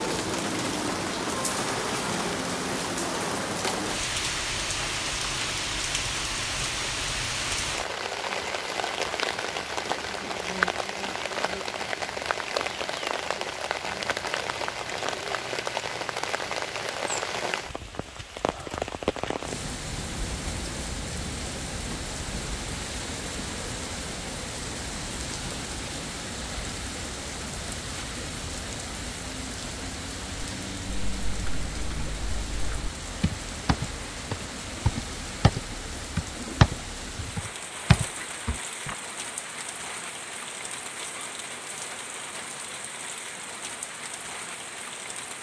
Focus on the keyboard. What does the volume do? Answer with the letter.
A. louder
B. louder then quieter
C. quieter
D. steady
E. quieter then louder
B.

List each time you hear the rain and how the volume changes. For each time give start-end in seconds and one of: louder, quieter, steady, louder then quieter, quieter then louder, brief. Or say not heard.
0.0-45.3 quieter.